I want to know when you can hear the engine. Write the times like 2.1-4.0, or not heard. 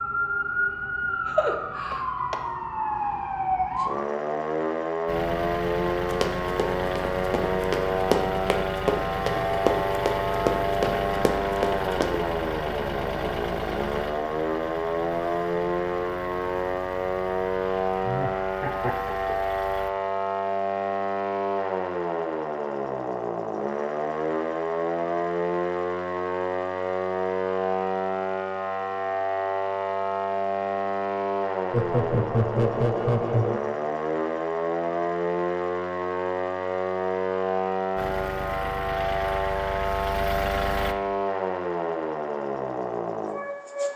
5.0-19.9, 38.0-41.0.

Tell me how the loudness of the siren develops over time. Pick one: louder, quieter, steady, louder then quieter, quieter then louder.
steady.